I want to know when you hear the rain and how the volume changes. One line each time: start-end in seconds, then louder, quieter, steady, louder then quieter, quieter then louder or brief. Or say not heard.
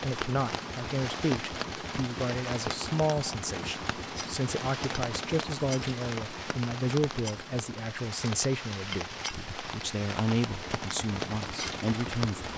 0.0-12.5 steady.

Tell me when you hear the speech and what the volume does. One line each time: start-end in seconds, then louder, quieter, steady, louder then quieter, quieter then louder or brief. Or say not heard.
0.0-12.5 steady.